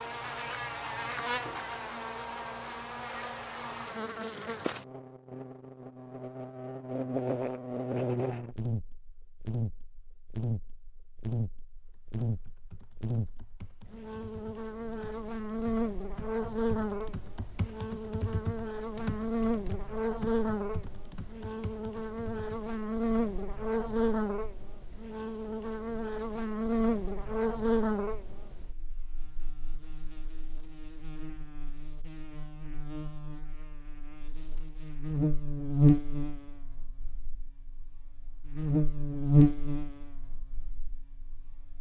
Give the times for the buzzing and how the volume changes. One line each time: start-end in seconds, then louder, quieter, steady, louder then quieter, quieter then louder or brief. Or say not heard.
0.0-41.7 louder.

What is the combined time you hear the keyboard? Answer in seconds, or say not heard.
11 s.